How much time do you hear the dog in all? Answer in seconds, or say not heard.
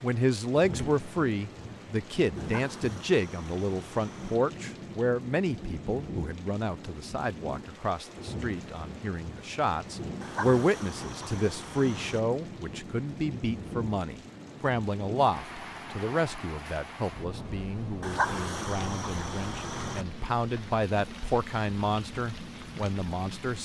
6 s.